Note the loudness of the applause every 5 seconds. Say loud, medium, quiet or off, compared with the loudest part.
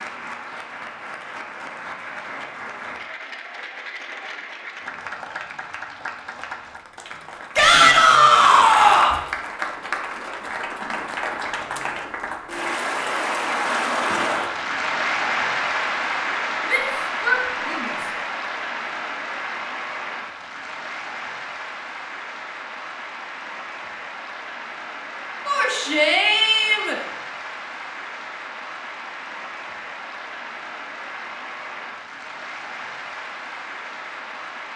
medium, medium, loud, loud, medium, medium, medium.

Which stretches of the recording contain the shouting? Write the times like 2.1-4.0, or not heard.
7.5-9.2, 16.6-17.9, 25.4-27.0.